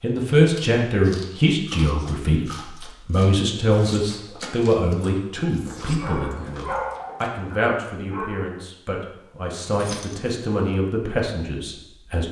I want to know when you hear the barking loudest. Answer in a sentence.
The loudest moment of the barking is at 7 seconds.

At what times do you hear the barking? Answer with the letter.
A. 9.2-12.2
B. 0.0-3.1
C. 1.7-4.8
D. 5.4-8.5
D.